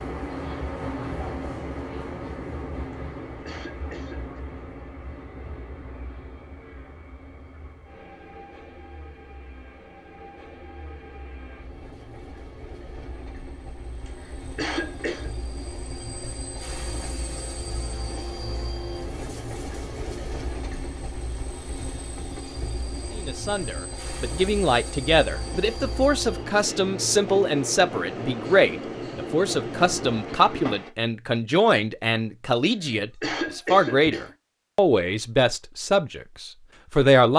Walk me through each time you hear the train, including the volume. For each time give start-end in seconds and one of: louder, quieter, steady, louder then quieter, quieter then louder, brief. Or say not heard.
0.0-30.9 quieter then louder.